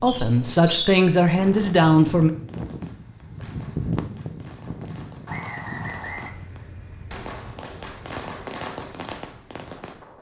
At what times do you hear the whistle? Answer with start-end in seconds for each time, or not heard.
0.1-0.9, 5.2-6.3.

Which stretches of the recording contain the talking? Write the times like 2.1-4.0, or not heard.
0.0-2.3.